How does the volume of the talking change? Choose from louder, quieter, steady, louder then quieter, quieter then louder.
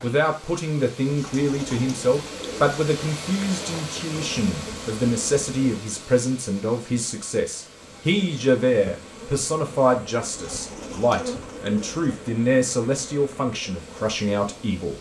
steady.